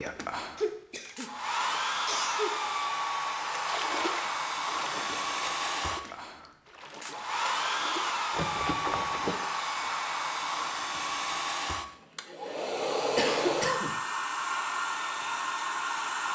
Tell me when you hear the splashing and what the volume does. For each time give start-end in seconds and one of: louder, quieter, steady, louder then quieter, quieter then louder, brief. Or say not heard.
3.5-9.4 quieter then louder.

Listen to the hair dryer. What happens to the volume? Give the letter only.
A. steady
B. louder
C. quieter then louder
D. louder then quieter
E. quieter
A.